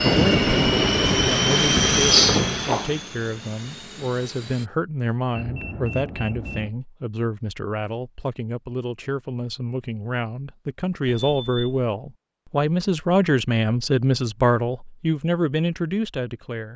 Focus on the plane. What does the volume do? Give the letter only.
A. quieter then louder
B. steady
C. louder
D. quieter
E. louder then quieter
D.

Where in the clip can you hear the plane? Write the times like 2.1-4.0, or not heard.
0.0-4.7.